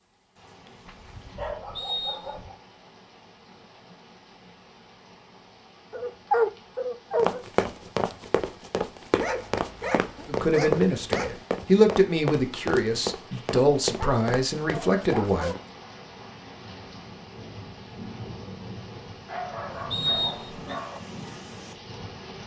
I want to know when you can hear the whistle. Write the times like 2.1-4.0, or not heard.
1.8-2.5, 19.9-20.8.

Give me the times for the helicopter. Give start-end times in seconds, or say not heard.
not heard.